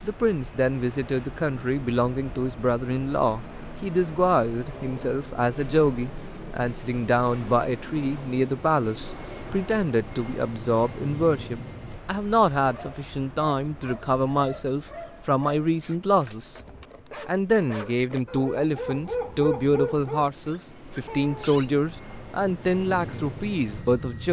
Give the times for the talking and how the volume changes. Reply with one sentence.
You can hear the talking from 0.0 to 16.6 s, at a steady volume; and from 17.2 to 24.2 s, at a steady volume.